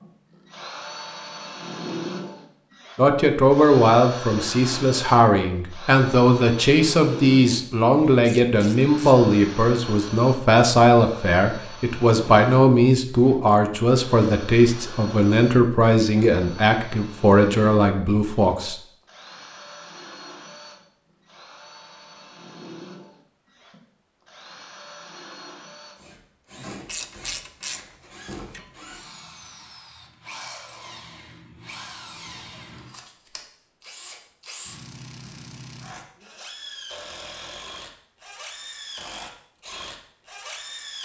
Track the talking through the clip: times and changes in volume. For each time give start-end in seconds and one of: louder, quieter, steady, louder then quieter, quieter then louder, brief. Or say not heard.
3.0-18.8 steady.